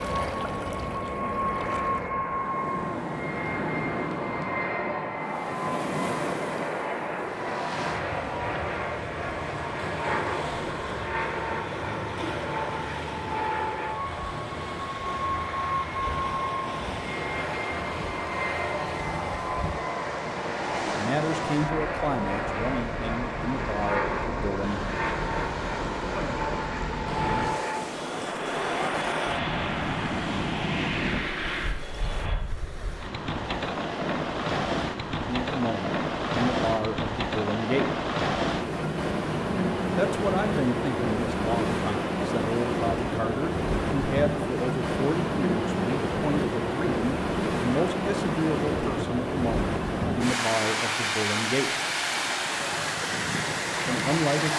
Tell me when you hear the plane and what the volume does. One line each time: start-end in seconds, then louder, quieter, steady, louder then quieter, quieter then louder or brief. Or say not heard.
0.0-32.4 steady.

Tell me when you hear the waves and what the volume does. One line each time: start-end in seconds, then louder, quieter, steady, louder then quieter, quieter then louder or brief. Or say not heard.
0.0-54.5 louder.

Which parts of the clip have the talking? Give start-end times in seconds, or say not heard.
20.9-24.9, 35.2-37.9, 40.0-51.7, 53.9-54.5.